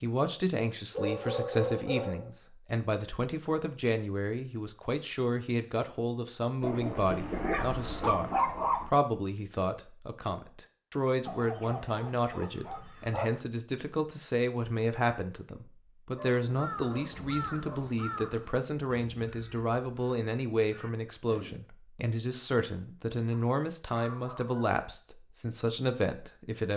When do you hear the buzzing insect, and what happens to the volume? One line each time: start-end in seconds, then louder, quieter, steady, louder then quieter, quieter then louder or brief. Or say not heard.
not heard.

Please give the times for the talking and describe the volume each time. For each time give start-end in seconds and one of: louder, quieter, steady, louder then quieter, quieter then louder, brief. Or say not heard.
0.0-26.7 steady.